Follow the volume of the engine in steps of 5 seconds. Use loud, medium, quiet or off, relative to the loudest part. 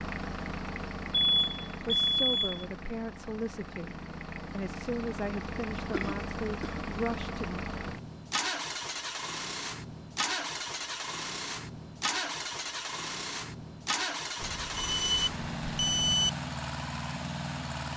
medium, loud, loud, loud.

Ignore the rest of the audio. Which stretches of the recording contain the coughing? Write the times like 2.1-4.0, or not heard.
5.9-7.2.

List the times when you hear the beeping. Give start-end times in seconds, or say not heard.
1.2-2.6, 14.4-16.3.